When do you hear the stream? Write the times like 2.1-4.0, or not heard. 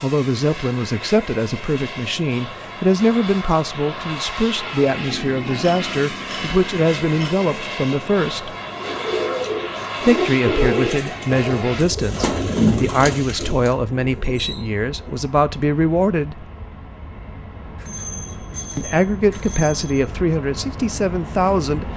not heard.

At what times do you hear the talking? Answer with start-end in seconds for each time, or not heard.
0.0-8.6, 10.0-16.4, 18.8-21.9.